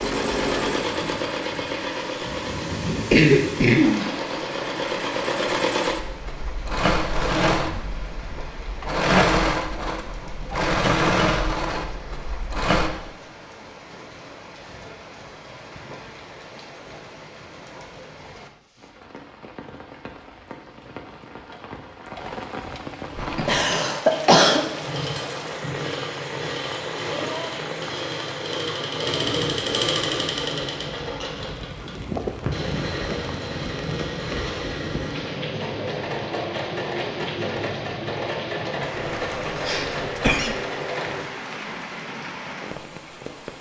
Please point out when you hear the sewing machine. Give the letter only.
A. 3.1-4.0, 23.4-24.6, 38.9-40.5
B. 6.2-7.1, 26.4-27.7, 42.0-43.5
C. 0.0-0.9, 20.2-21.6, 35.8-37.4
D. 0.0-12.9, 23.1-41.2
D.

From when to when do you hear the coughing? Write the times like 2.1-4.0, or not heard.
3.1-4.0, 23.4-24.6, 38.9-40.5.